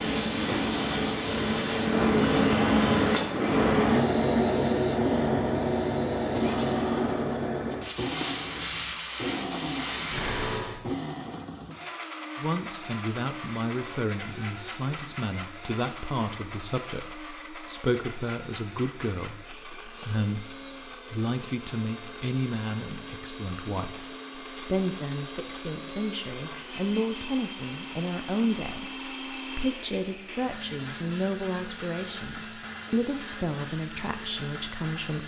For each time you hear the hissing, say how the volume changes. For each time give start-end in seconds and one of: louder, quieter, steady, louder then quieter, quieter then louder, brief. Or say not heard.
0.0-10.8 quieter.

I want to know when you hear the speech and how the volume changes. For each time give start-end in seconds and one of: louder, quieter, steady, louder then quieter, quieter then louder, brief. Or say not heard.
12.3-35.2 steady.